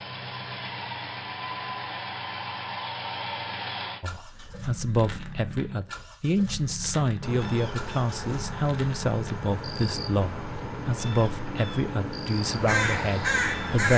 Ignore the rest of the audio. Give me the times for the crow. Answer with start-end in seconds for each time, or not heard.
12.3-13.9.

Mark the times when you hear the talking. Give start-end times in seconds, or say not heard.
4.0-13.9.